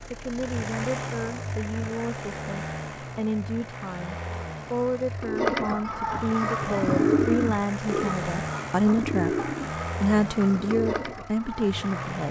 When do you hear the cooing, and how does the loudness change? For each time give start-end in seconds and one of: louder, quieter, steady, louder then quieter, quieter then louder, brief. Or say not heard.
5.2-12.2 louder then quieter.